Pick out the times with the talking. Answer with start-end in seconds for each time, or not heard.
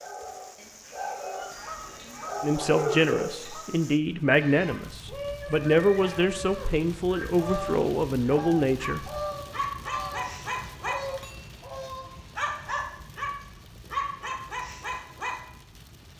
2.4-9.1.